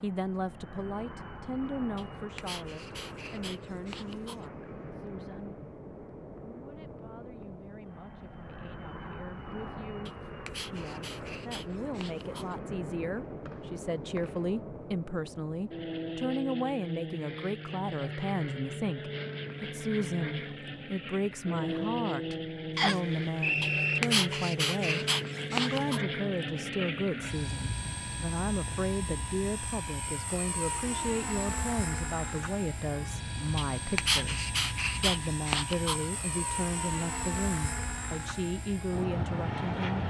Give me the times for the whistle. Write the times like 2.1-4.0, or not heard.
13.4-14.5, 22.8-24.0.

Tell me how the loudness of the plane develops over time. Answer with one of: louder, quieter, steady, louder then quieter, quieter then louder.
louder.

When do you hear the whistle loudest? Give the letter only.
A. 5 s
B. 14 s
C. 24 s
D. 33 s
C.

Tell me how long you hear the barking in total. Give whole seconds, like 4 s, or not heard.
10 s.